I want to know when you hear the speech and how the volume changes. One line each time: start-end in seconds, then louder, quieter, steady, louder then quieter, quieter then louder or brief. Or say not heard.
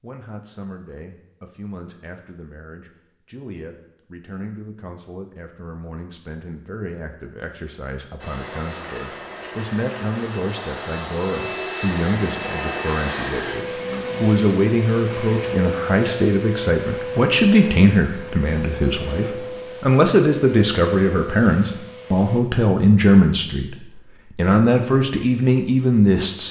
0.0-26.4 louder.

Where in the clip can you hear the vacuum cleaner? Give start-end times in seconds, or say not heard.
8.2-22.4.